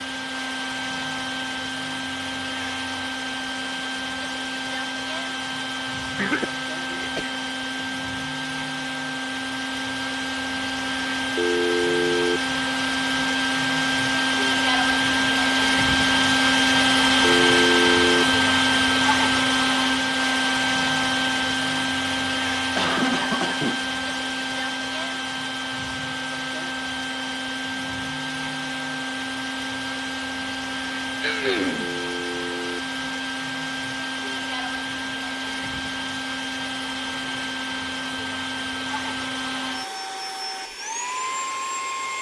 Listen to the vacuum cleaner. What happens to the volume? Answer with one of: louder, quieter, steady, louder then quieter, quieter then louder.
louder then quieter.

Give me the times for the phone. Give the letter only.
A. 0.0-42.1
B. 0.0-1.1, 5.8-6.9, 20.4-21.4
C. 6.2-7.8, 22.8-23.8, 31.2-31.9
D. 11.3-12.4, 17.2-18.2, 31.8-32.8
D.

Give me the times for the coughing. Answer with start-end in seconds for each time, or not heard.
6.2-7.8, 22.8-23.8, 31.2-31.9.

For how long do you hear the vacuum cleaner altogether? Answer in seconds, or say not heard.
42 s.